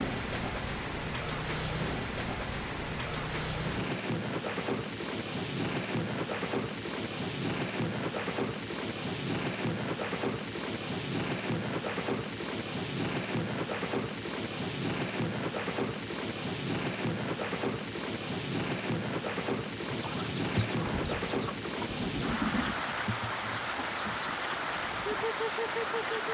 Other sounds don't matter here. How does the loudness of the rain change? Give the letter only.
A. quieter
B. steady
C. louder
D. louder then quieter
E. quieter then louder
B.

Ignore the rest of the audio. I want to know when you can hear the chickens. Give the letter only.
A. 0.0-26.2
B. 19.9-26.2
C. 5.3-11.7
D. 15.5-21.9
B.